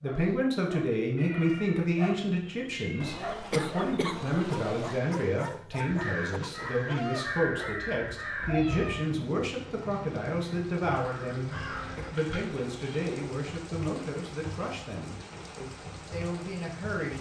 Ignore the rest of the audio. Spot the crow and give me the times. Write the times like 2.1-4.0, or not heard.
5.8-12.2.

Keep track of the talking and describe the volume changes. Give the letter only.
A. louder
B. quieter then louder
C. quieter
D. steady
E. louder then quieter
C.